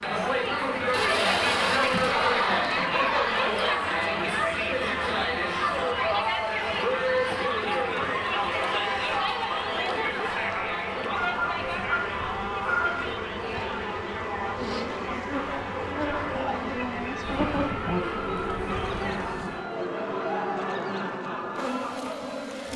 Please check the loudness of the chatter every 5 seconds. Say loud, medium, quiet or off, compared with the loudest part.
loud, loud, medium, medium, medium.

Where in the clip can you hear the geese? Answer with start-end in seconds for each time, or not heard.
0.9-3.8, 11.1-13.2, 17.2-19.6.